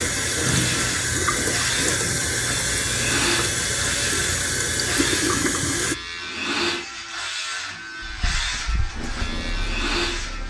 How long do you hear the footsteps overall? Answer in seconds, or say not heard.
not heard.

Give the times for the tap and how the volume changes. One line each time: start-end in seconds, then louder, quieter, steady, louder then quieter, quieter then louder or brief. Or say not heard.
0.0-6.0 steady
8.0-10.4 brief.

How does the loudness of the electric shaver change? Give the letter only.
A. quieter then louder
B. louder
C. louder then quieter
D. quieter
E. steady
E.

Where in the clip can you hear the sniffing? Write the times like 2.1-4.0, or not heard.
not heard.